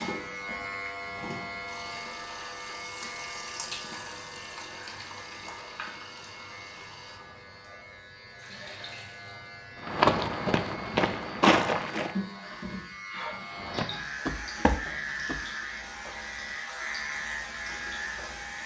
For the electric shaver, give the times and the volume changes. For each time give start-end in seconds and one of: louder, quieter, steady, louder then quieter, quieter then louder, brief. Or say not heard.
0.0-18.6 quieter then louder.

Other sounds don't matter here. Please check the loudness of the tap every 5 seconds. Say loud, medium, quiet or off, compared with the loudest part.
loud, medium, loud, medium.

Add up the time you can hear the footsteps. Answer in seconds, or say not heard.
4 s.